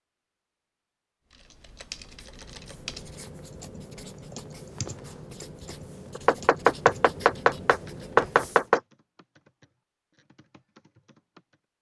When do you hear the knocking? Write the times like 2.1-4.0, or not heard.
6.2-8.8.